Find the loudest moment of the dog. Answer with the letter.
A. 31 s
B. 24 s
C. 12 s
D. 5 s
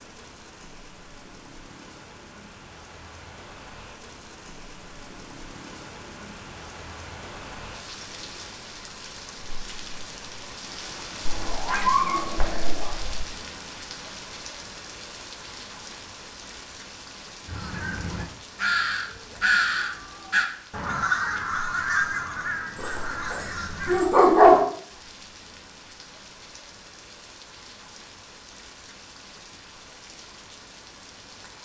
B.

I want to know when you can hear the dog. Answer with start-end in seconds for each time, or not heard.
11.2-13.2, 22.8-24.6.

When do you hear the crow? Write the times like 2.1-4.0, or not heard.
17.4-24.1.